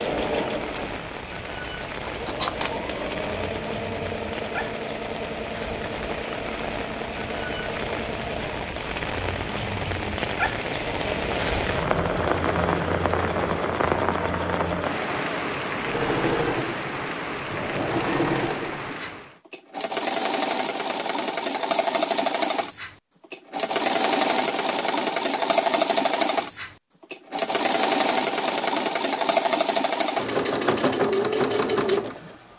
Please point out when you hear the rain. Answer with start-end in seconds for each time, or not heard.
0.0-19.4.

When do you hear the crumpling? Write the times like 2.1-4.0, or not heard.
1.6-3.0.